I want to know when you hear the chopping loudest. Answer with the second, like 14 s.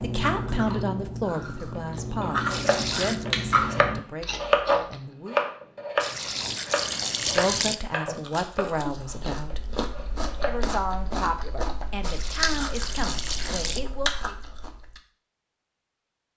5 s.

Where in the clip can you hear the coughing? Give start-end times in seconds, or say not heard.
not heard.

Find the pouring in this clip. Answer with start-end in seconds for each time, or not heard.
2.5-3.2, 6.0-7.8, 12.1-13.8.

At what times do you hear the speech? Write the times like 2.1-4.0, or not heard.
0.0-5.4, 7.3-9.6, 10.4-14.3.